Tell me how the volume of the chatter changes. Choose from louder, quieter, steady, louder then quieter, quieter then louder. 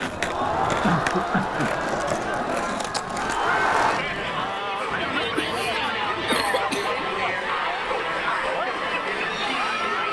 steady.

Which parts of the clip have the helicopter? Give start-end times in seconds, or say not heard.
not heard.